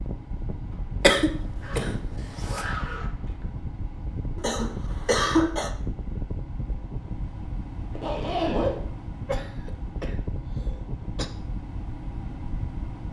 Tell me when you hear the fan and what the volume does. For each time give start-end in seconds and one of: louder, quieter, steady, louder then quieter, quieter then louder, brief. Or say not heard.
0.0-13.0 steady.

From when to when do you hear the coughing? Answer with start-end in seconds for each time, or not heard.
1.0-2.6, 4.3-5.7, 9.2-11.2.